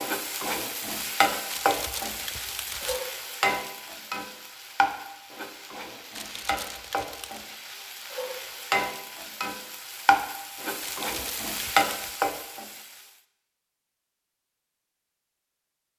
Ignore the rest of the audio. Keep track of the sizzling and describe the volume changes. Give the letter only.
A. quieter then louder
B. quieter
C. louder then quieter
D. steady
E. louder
A.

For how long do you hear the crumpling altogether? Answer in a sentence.
The crumpling can be heard for 4 seconds in total.